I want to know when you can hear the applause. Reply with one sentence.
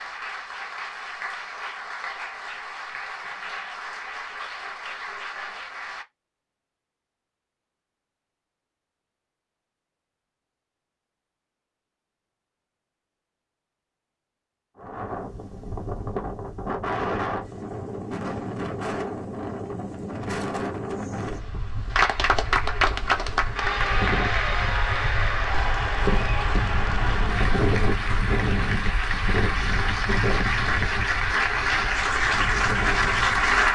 You can hear the applause from 0.0 to 6.0 s and from 21.9 to 33.7 s.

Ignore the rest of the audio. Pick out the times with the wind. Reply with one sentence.
The wind can be heard from 14.8 to 33.7 s.